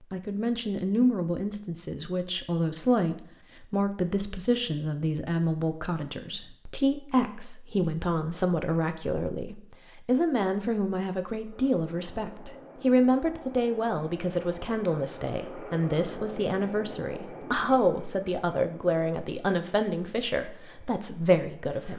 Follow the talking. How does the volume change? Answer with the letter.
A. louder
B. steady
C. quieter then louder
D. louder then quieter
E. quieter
B.